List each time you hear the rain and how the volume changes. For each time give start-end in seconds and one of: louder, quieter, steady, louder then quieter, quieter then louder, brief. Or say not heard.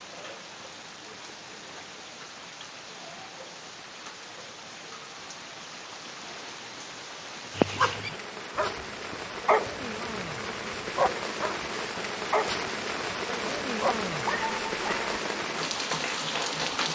0.0-16.8 louder.